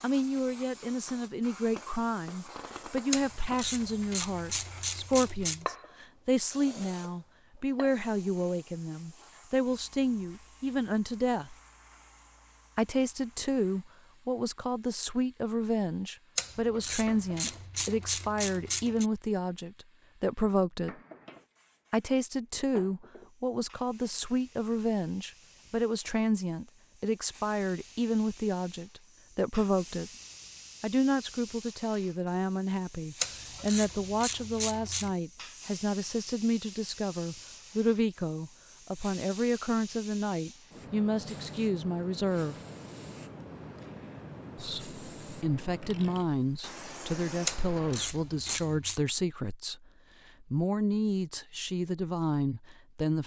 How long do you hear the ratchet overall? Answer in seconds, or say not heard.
9 s.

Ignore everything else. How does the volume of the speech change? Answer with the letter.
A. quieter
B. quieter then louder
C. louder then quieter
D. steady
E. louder
D.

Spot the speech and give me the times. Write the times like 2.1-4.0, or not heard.
0.0-11.6, 12.8-20.9, 21.9-30.1, 30.8-42.5, 44.5-53.2.